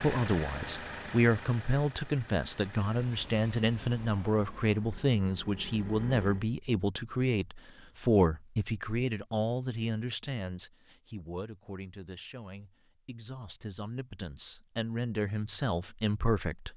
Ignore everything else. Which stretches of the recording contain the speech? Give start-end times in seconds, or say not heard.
0.0-16.7.